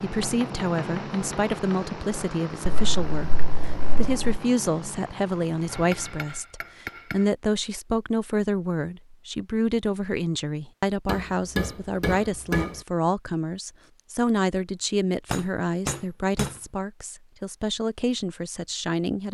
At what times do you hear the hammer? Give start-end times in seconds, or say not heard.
0.2-1.9, 5.7-7.3, 11.1-12.8, 15.3-16.6.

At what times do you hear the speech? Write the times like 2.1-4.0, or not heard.
0.0-19.2.